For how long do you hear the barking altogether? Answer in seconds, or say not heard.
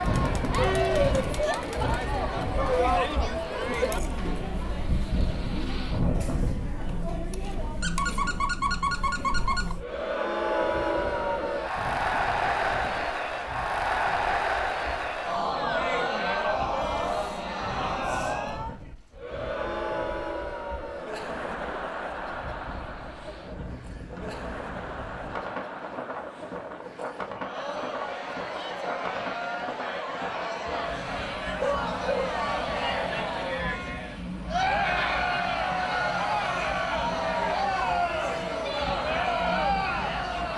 3 s.